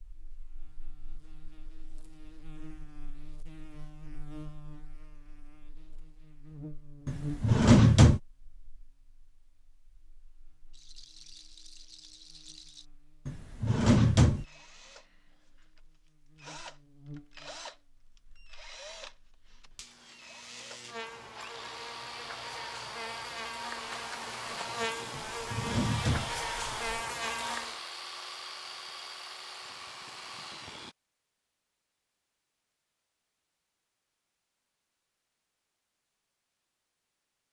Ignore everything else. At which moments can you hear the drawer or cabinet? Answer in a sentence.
The drawer or cabinet can be heard from 7.0 to 8.2 s, from 13.2 to 14.4 s and from 25.1 to 26.9 s.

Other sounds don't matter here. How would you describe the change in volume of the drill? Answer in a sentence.
The loudness of the drill goes up.